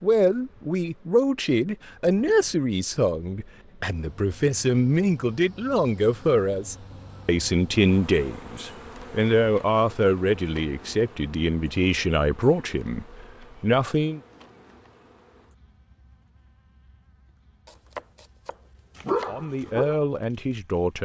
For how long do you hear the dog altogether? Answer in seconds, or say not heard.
2 s.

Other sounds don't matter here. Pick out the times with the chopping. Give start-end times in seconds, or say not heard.
17.6-19.4.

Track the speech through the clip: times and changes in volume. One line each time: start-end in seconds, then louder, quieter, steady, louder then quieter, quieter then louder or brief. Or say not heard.
0.0-14.2 steady
19.2-21.0 brief.